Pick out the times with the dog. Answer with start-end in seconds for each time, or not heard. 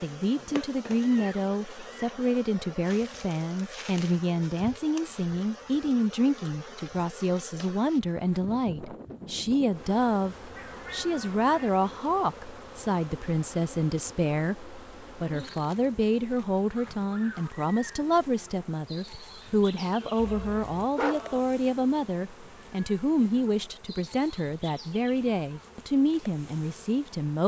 19.4-21.4.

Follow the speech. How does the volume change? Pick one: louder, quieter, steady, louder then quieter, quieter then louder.
steady.